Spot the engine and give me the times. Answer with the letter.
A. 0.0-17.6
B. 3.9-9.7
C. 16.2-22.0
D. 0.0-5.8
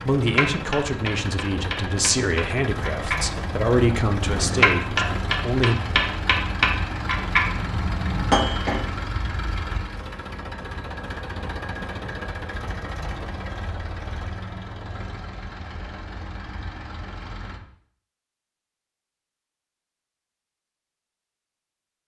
A.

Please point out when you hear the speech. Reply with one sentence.
The speech can be heard from 0.0 to 5.8 s.